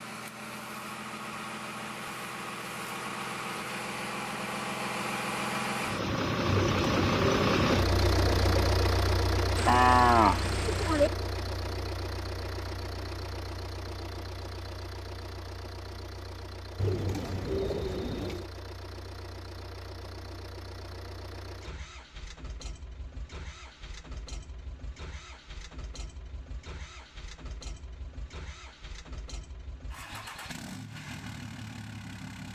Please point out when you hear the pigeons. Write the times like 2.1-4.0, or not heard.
6.5-8.8, 16.8-18.4.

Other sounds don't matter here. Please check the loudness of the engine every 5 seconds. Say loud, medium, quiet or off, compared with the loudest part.
medium, loud, medium, quiet, quiet, quiet, quiet.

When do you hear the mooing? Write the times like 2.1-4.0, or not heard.
9.6-11.1.